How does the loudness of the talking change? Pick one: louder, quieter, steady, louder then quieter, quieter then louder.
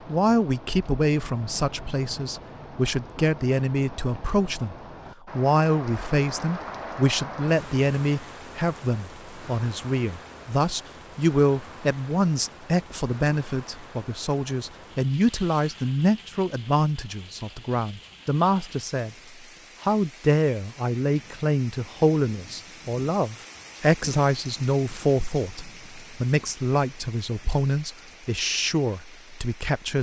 steady.